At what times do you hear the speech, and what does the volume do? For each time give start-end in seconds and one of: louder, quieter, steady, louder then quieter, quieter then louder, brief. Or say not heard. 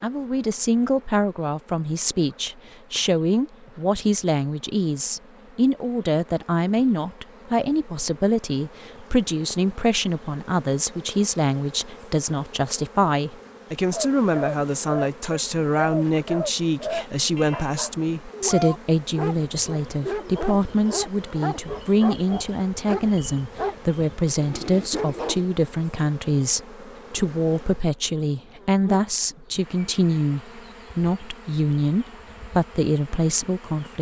0.0-33.9 steady.